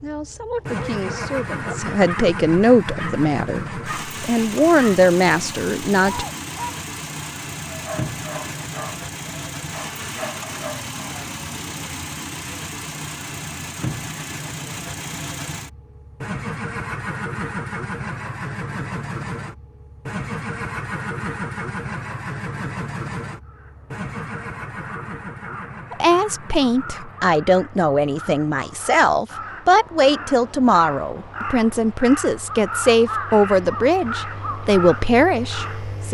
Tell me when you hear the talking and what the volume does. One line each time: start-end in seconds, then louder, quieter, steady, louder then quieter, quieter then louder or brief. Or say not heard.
0.0-6.2 louder
25.9-36.1 steady.